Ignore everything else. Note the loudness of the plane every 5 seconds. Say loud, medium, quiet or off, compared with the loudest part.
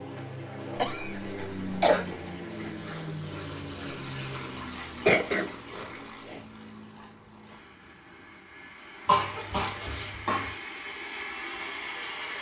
loud, medium, loud.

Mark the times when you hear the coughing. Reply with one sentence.
You can hear the coughing from 0.8 to 2.0 s, from 5.0 to 6.4 s and from 9.1 to 10.6 s.